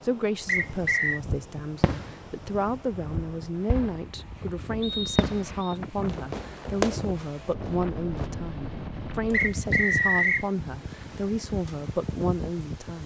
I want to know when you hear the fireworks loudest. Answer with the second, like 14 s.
7 s.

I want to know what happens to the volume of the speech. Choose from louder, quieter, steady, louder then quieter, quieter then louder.
steady.